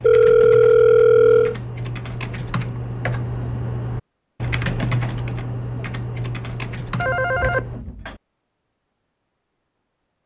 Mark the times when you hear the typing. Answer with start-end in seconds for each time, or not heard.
0.0-7.8.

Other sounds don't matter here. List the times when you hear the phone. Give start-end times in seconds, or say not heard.
0.0-1.6, 7.0-8.2.